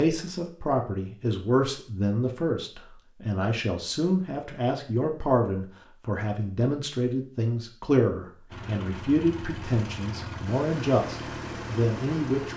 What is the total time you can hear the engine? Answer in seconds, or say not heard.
4 s.